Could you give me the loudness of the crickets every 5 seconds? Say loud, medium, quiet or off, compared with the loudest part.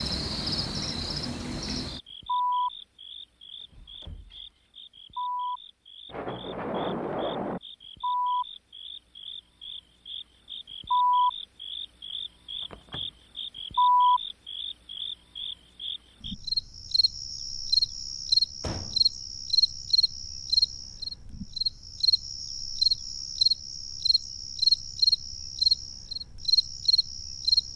medium, medium, loud, loud, loud, loud.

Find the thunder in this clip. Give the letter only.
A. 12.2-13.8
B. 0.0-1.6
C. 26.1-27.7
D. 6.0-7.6
D.